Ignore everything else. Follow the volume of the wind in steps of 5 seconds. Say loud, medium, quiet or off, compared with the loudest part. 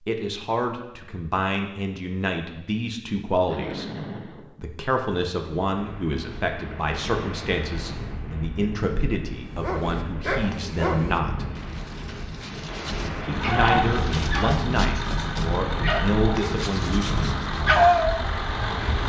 off, medium, loud, loud.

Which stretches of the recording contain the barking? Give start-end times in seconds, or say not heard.
9.5-18.3.